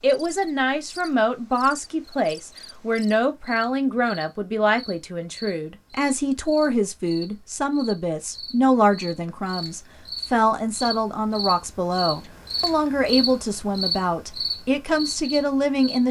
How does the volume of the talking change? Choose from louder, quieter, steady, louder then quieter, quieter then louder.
steady.